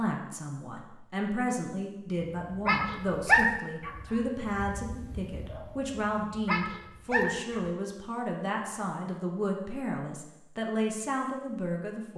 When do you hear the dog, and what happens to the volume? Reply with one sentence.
The dog can be heard from 2.5 to 7.7 s, getting quieter then louder.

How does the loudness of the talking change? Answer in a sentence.
The loudness of the talking stays about the same.